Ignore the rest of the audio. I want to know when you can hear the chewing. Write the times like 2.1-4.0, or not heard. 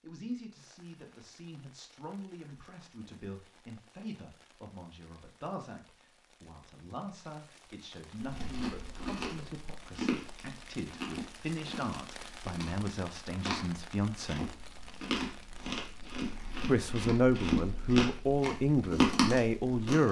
8.2-20.0.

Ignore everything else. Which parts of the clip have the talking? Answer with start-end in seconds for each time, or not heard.
0.0-14.5, 16.6-20.0.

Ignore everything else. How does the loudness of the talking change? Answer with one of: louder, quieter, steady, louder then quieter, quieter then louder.
louder.